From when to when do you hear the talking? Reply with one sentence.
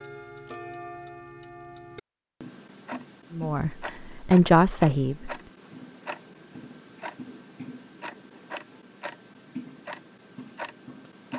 You can hear the talking from 3.3 to 5.3 s.